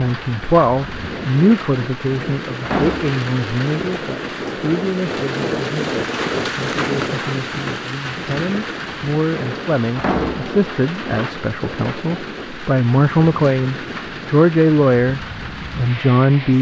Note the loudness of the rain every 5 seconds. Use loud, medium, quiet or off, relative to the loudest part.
loud, loud, medium, medium.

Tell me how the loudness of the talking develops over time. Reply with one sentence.
The volume of the talking goes down, then up.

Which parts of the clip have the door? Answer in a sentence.
The door can be heard from 2.6 to 3.2 s and from 9.9 to 10.6 s.